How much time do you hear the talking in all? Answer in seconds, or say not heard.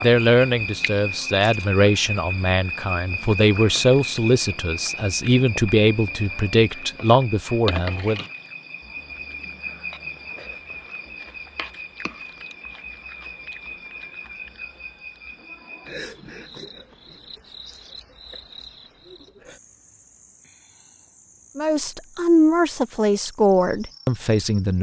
11 s.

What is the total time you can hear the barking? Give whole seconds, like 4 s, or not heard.
not heard.